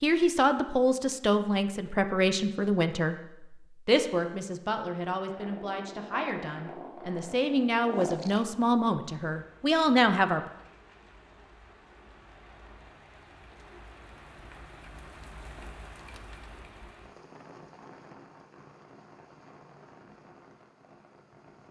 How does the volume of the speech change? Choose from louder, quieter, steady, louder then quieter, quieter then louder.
quieter then louder.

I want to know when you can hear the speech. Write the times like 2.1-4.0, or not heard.
0.0-10.4.